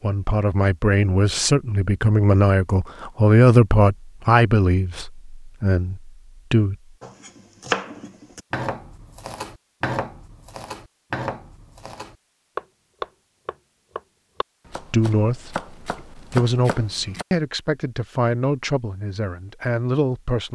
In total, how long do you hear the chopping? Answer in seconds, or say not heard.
10 s.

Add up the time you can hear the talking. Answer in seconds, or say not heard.
13 s.